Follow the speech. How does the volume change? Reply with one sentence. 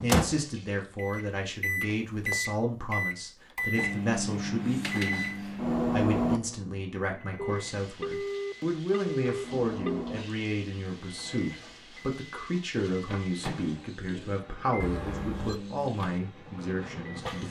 The volume of the speech stays about the same.